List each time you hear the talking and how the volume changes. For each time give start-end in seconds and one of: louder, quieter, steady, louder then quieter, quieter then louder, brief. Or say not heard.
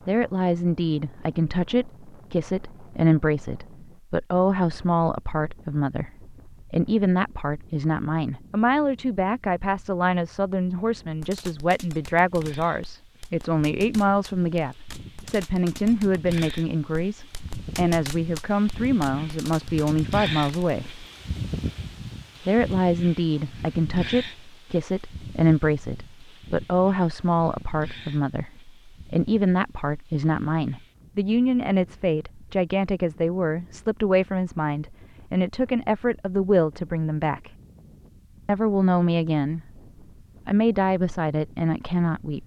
0.1-21.1 steady
22.4-37.5 steady
38.5-39.6 brief
40.5-42.4 brief.